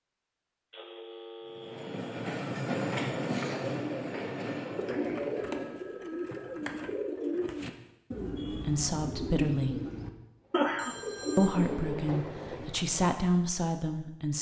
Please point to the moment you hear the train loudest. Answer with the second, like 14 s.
3 s.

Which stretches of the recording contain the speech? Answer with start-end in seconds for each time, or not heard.
8.5-9.8, 11.3-14.3.